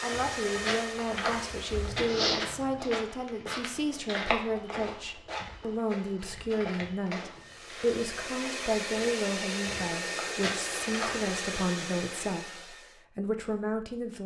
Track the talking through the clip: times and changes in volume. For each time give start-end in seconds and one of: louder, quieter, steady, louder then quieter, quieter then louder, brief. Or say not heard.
0.0-14.2 steady.